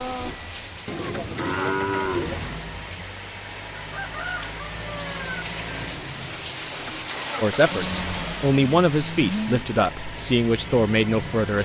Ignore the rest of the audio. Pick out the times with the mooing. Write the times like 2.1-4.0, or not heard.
0.8-2.6, 7.7-9.7.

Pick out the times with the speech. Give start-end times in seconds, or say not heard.
7.4-11.6.